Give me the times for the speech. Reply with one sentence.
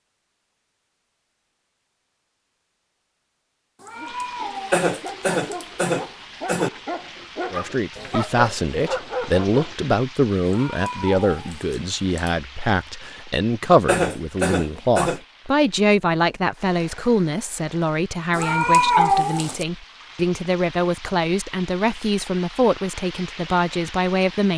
The speech can be heard from 7.5 to 24.5 s.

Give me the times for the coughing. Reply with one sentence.
The coughing can be heard from 4.7 to 6.7 s and from 13.8 to 15.2 s.